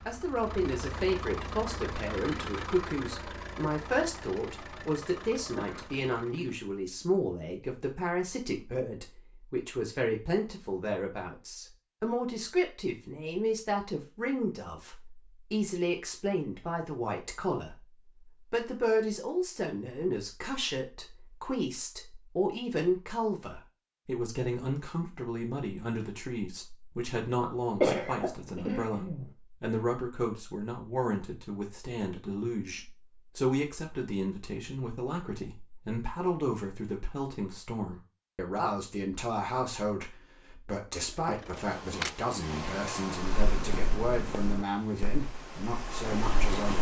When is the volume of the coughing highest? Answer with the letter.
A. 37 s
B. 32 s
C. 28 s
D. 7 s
C.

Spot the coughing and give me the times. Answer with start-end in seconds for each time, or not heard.
5.5-6.0, 27.8-29.2.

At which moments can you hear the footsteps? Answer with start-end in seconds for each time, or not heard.
43.2-46.7.